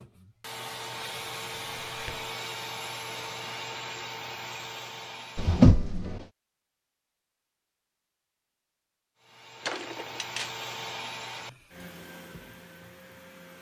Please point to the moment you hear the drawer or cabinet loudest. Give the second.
6 s.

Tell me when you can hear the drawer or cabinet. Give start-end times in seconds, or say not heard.
1.4-2.2, 5.3-6.2, 9.7-10.5.